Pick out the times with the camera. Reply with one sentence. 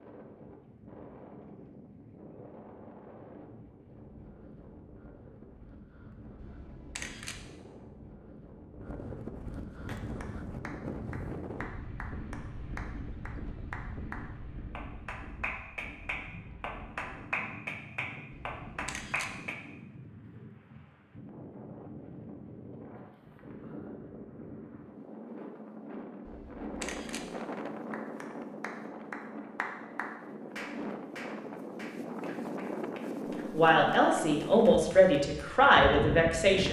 The camera can be heard from 6.3 to 7.5 s, from 18.3 to 19.4 s and from 26.2 to 27.3 s.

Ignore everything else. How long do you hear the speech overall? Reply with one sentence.
The speech can be heard for 3 seconds in total.